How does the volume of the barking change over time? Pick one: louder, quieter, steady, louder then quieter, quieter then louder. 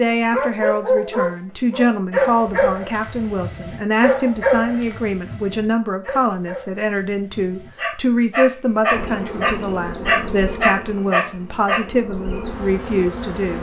quieter then louder.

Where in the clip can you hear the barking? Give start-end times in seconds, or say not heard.
0.3-11.8.